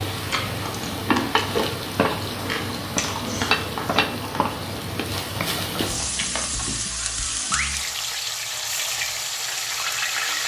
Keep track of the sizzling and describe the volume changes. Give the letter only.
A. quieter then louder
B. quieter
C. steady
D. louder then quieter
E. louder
C.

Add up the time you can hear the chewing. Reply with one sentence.
The chewing can be heard for 8 seconds in total.